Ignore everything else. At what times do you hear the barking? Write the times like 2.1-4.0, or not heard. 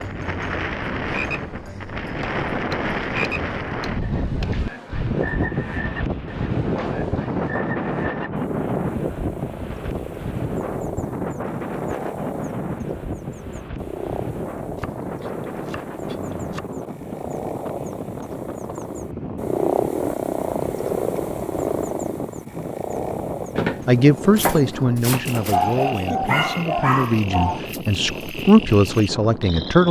25.5-27.6.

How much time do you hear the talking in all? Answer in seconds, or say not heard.
6 s.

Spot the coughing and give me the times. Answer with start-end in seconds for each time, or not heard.
not heard.